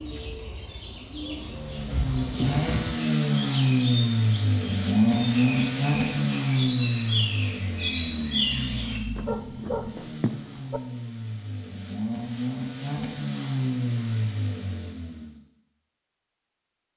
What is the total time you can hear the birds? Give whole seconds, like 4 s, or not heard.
9 s.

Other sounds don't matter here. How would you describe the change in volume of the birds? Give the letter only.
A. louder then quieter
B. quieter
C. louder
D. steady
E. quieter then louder
C.